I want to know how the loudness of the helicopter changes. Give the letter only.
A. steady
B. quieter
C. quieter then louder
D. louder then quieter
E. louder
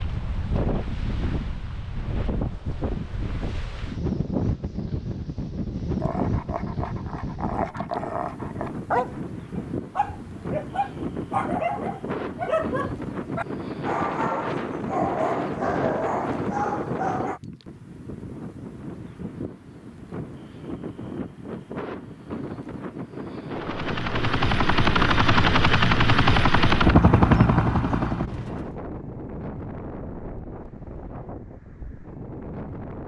D.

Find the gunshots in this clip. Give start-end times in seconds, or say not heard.
not heard.